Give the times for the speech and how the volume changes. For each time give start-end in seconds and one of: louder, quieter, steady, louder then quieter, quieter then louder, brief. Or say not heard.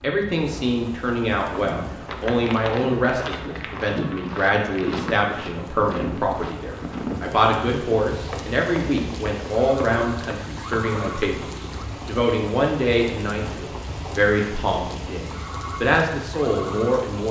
0.0-17.2 steady.